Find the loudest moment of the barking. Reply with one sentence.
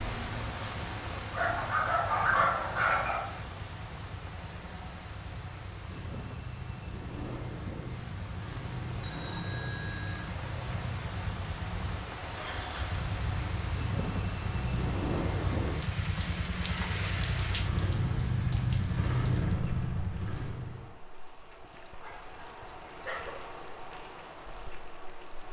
The loudest moment of the barking is at 2 seconds.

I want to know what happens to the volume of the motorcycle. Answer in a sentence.
The volume of the motorcycle goes up.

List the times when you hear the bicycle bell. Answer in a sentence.
You can hear the bicycle bell from 9.0 to 10.3 s.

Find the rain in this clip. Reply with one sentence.
The rain can be heard from 0.0 to 25.4 s.